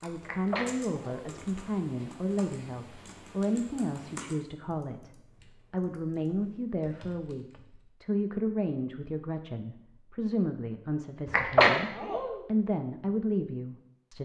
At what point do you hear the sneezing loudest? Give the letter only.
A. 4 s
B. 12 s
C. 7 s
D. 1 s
B.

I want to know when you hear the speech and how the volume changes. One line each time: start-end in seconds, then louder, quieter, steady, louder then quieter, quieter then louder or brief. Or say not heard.
0.0-14.2 steady.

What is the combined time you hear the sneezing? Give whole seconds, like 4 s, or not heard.
2 s.